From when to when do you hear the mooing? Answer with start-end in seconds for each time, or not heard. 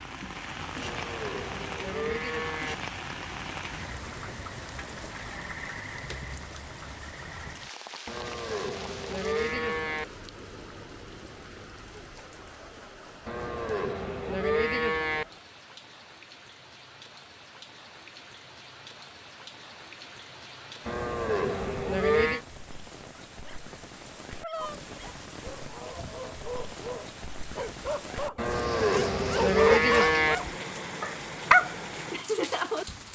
0.8-2.8, 8.1-10.1, 13.2-15.2, 20.9-22.4, 28.4-30.4.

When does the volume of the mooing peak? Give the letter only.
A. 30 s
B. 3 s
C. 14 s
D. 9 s
A.